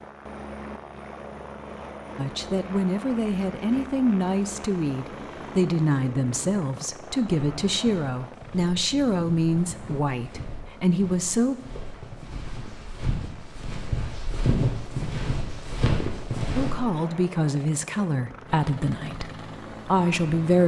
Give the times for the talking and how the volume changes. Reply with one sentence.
The talking can be heard from 2.1 to 11.6 s, at a steady volume; and from 16.6 to 20.6 s, getting quieter then louder.